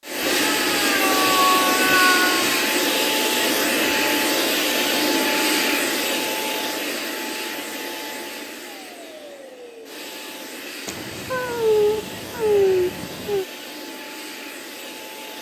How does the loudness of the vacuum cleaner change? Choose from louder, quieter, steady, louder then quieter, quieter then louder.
quieter.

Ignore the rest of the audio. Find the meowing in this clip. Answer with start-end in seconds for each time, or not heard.
0.2-2.6, 10.8-13.4.